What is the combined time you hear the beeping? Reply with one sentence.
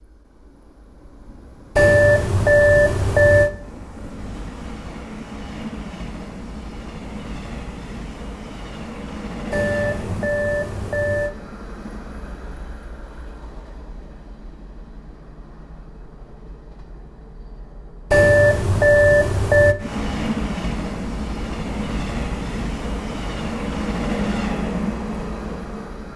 The beeping can be heard for 5 seconds in total.